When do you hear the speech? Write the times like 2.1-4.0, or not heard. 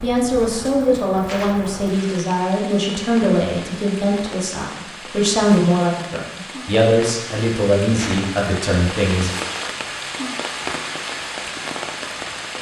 0.0-9.3.